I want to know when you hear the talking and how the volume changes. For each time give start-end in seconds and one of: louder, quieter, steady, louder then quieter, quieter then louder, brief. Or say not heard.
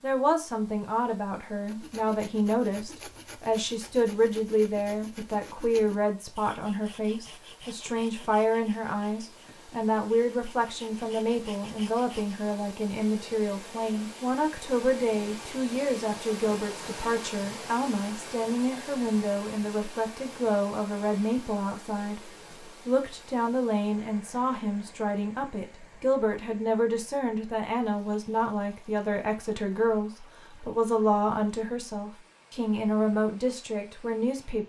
0.0-34.6 steady.